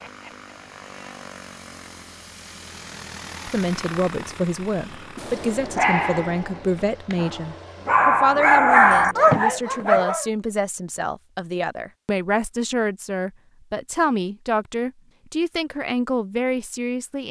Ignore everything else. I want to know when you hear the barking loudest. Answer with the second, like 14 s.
9 s.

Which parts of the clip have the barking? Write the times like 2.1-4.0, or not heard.
4.7-10.2.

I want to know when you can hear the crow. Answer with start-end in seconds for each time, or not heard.
not heard.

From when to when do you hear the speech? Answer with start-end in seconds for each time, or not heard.
3.5-17.2.